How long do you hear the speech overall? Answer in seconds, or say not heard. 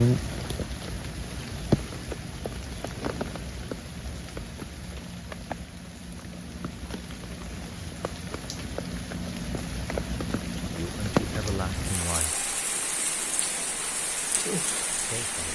2 s.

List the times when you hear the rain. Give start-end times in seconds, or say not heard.
0.0-15.4.